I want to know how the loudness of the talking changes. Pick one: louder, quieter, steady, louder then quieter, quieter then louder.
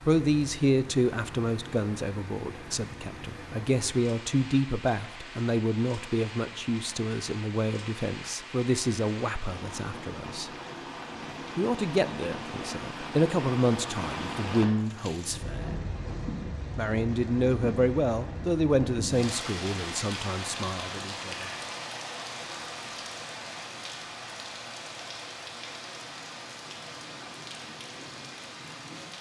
steady.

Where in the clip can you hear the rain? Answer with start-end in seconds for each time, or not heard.
0.0-29.1.